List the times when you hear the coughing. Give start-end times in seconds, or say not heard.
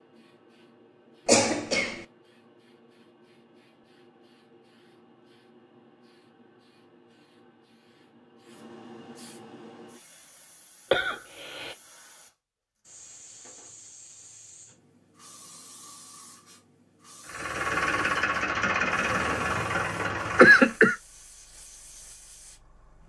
1.2-2.0, 10.9-11.8, 20.4-20.9.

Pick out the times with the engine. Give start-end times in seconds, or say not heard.
17.2-20.8.